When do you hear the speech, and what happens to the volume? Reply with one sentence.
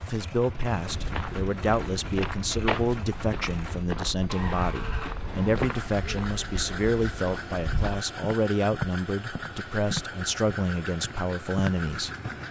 You can hear the speech from 0.1 to 12.1 s, at a steady volume.